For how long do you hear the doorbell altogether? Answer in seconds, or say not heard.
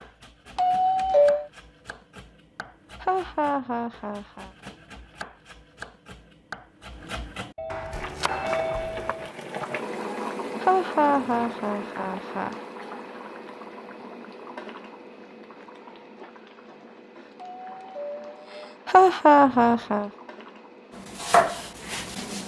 4 s.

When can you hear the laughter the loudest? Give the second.
19 s.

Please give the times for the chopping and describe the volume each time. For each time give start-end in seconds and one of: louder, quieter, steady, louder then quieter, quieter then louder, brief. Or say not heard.
0.0-9.2 louder
21.1-22.4 brief.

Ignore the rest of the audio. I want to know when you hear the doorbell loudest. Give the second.
1 s.